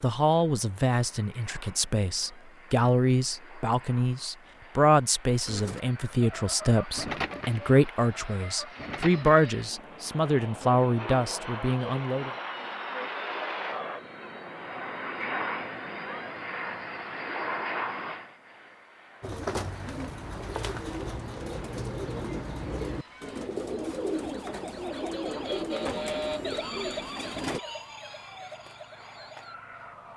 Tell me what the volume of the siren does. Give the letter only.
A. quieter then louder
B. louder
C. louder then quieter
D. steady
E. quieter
C.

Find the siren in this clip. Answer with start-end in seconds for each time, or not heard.
22.9-30.1.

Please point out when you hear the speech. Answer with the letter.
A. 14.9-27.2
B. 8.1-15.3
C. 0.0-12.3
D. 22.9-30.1
C.